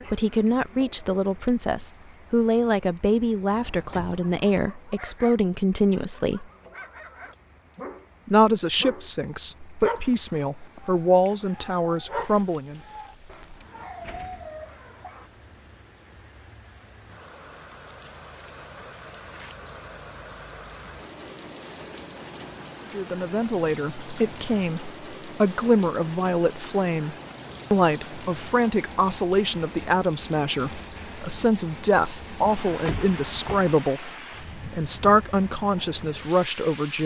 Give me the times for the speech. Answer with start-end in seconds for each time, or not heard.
0.1-6.5, 8.2-12.8, 22.9-37.0.